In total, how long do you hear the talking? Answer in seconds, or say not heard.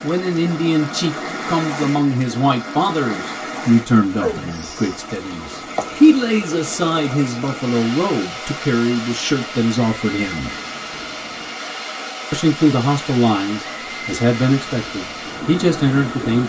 15 s.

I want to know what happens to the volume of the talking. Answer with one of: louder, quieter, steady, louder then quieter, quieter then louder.
steady.